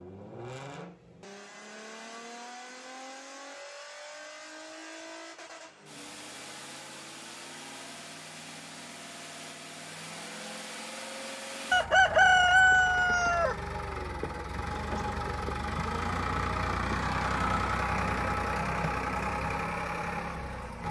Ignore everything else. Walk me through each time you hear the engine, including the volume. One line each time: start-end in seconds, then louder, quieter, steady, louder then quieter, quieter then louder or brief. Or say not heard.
0.0-20.8 louder.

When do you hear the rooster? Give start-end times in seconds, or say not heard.
11.7-13.6.